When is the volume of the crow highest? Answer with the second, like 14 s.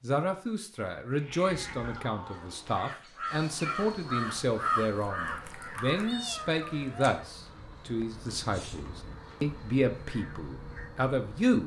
5 s.